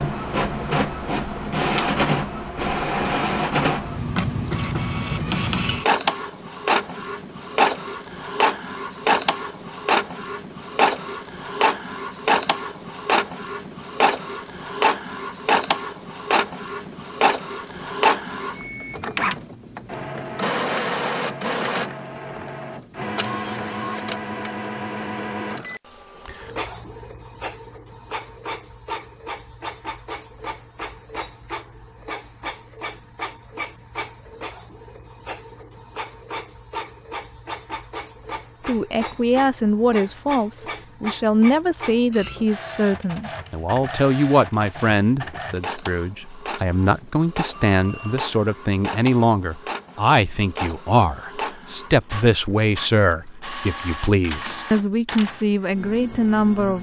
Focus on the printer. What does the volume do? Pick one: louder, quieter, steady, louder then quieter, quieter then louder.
quieter.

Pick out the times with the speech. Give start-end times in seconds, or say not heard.
38.6-56.7.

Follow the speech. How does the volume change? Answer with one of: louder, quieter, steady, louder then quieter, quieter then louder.
steady.